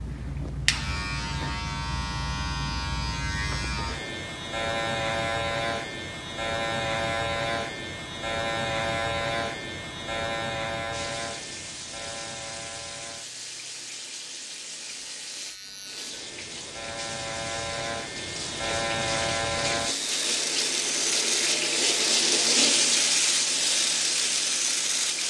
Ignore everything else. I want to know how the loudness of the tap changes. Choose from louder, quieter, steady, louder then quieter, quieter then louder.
louder.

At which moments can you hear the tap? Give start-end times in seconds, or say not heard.
10.9-25.2.